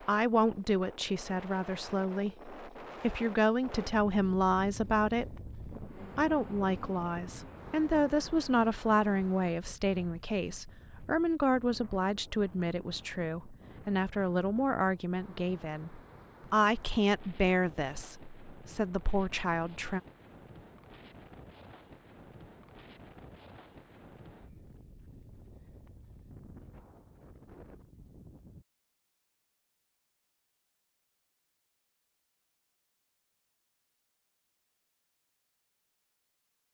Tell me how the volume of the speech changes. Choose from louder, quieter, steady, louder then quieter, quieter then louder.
steady.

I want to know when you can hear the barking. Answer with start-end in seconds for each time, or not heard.
not heard.